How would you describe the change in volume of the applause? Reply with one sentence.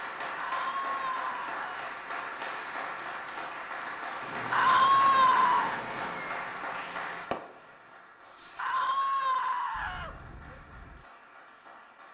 The loudness of the applause goes down.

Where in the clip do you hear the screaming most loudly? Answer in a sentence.
The loudest moment of the screaming is at 5 seconds.